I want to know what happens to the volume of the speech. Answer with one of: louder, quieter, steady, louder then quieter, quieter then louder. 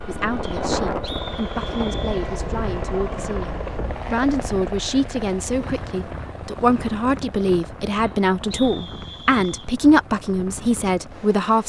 louder.